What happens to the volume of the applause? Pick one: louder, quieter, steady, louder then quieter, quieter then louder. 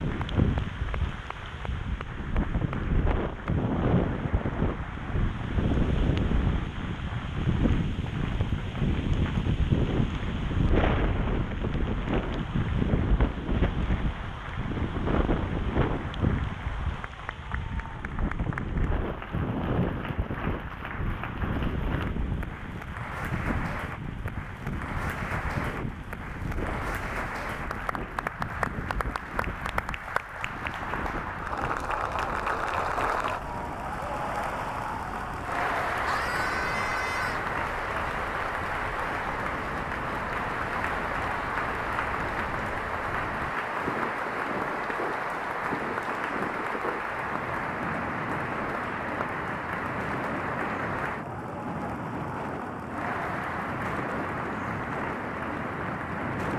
louder.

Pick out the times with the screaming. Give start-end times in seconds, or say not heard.
36.0-37.5.